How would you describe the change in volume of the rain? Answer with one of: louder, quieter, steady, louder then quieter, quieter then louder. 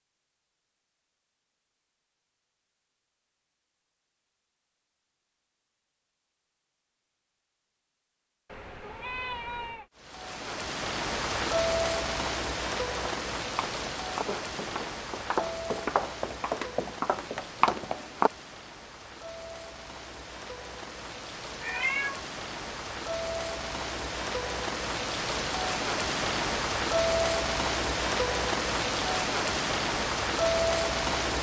quieter then louder.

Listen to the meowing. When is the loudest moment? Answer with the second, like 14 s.
22 s.